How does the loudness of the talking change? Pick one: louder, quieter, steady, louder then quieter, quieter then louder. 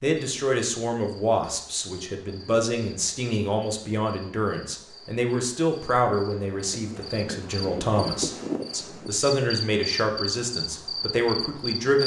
steady.